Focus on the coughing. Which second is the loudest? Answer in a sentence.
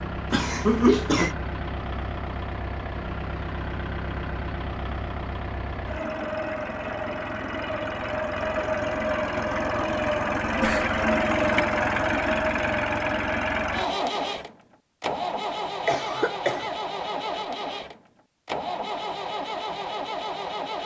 The loudest moment of the coughing is at 1 second.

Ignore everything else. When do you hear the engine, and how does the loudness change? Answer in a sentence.
You can hear the engine from 0.0 to 20.8 s, getting louder then quieter.